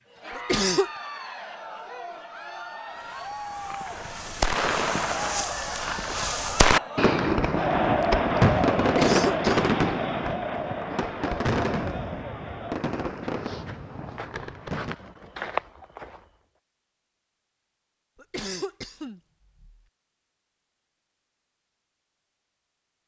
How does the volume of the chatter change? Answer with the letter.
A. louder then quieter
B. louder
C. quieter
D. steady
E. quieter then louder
A.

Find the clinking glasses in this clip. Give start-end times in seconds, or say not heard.
not heard.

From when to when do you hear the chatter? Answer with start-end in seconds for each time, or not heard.
0.1-12.8.